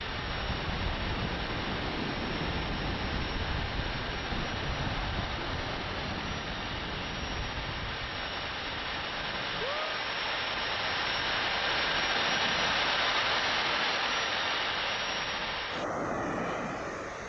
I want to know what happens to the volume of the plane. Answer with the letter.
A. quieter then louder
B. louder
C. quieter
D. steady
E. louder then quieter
B.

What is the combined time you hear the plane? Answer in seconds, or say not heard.
17 s.